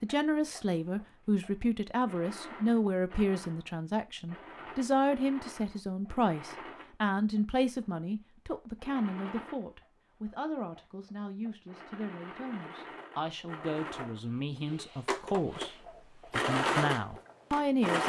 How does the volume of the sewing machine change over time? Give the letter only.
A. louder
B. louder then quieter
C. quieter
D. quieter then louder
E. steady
A.